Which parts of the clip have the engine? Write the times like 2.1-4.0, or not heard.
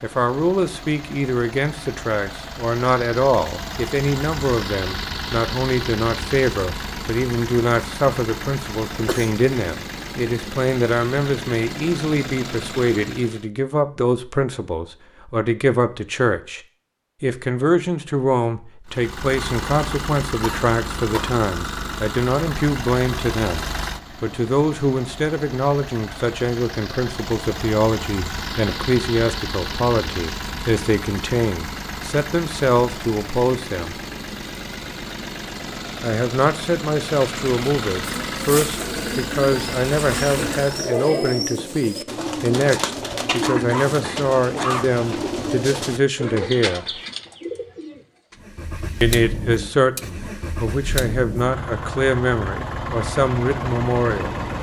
0.0-13.5, 18.9-41.0, 48.4-54.5.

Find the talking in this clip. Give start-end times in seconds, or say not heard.
0.0-16.6, 17.2-34.0, 36.0-47.0, 49.0-54.5.